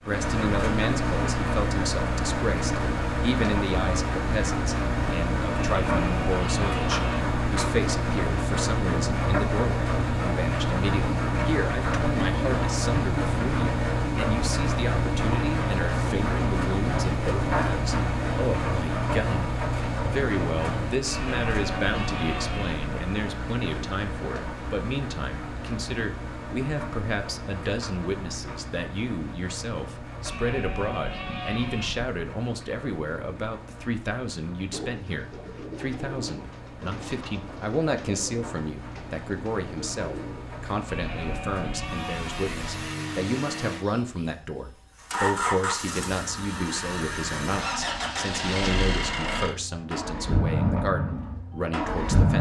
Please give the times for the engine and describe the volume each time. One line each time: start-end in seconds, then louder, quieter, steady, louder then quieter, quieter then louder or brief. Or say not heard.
0.0-52.3 quieter then louder.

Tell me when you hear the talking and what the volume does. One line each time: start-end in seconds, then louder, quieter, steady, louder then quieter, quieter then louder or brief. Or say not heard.
0.0-52.3 steady.